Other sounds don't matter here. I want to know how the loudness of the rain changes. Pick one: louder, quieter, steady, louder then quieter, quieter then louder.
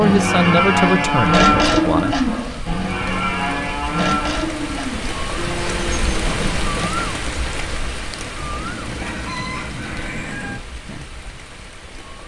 louder then quieter.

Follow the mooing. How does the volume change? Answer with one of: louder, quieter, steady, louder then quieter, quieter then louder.
quieter.